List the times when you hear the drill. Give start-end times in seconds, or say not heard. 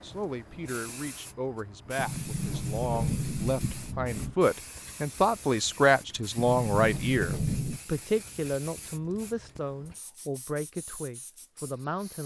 not heard.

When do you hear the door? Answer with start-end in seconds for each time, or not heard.
1.9-4.3, 6.3-7.8.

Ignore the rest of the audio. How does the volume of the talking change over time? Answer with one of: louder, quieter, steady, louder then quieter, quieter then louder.
louder then quieter.